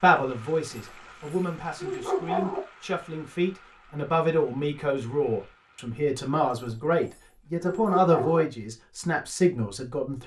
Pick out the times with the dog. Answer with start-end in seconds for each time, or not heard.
0.7-2.6, 6.5-8.4.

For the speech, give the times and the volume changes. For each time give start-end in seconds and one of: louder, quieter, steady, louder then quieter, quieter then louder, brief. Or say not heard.
0.0-10.2 louder.